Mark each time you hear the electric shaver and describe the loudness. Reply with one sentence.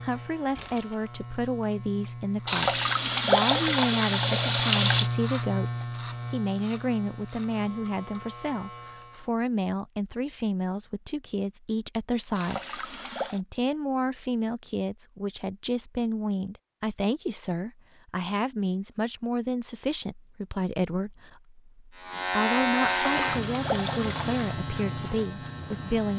The electric shaver can be heard from 0.0 to 9.3 s, getting louder then quieter; and from 21.9 to 26.1 s, getting quieter.